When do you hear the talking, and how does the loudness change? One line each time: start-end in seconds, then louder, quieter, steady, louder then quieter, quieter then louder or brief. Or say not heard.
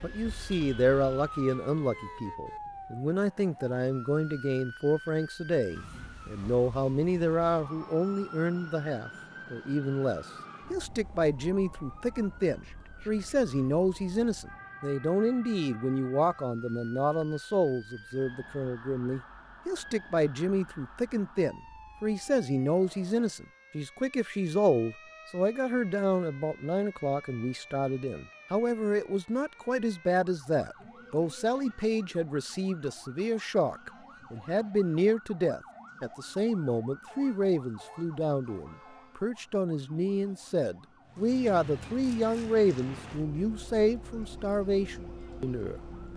0.0-46.1 steady.